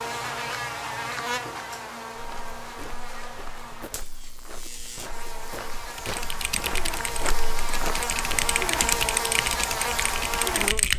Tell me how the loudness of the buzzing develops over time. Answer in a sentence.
The volume of the buzzing goes down, then up.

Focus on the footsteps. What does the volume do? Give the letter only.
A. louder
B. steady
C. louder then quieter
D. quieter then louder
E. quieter
A.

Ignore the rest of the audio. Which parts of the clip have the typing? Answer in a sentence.
The typing can be heard from 6.0 to 10.9 s.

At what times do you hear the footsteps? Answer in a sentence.
You can hear the footsteps from 2.1 to 8.6 s.